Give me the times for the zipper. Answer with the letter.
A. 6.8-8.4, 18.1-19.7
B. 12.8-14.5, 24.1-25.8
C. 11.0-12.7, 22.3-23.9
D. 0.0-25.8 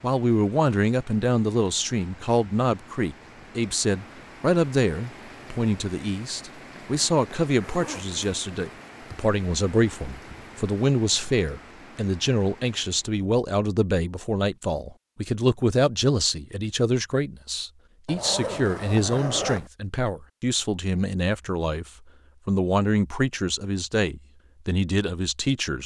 A.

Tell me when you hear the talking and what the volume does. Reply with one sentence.
The talking can be heard from 0.0 to 25.8 s, at a steady volume.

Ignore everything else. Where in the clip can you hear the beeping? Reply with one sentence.
You can't hear the beeping here.